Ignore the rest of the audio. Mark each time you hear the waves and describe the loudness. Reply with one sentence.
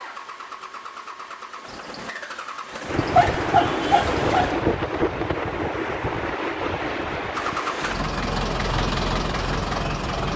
You can hear the waves from 2.9 to 10.3 s, getting quieter.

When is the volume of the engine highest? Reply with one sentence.
The loudest moment of the engine is at 9 seconds.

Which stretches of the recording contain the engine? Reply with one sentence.
The engine can be heard from 0.0 to 4.5 s and from 7.3 to 10.3 s.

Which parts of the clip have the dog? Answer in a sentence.
You can hear the dog from 3.1 to 4.5 s.